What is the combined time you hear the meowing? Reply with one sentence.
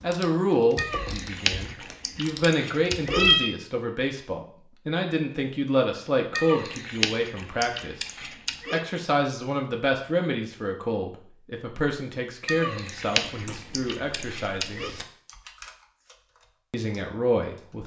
The meowing can be heard for 8 seconds in total.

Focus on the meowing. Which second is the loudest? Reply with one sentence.
The loudest moment of the meowing is at 3 seconds.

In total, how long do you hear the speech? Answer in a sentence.
You can hear the speech for 16 seconds altogether.